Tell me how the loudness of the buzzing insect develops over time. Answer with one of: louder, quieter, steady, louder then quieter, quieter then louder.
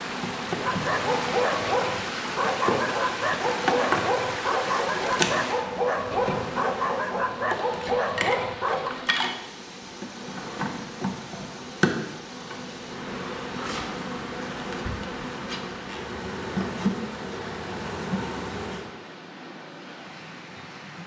steady.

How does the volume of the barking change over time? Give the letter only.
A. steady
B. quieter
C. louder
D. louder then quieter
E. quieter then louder
A.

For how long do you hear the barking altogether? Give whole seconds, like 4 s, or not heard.
8 s.